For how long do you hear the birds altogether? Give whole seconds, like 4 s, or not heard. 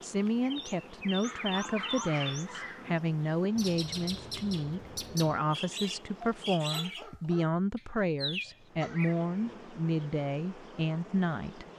10 s.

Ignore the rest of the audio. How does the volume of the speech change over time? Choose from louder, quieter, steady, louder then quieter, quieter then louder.
steady.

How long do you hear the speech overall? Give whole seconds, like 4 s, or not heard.
12 s.